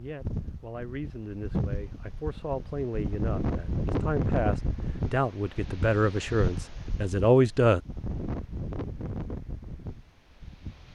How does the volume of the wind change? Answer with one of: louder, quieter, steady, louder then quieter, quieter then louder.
louder then quieter.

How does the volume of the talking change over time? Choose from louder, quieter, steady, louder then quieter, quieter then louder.
louder.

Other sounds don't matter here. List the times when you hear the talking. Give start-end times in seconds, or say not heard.
0.0-7.8.